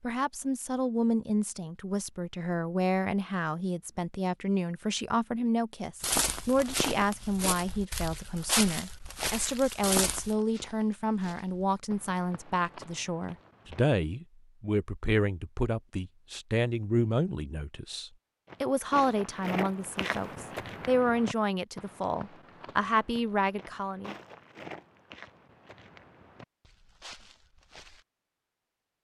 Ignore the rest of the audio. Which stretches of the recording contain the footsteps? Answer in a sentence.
You can hear the footsteps from 6.0 to 13.9 s and from 18.4 to 28.1 s.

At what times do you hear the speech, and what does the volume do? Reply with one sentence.
The speech can be heard from 0.0 to 24.1 s, at a steady volume.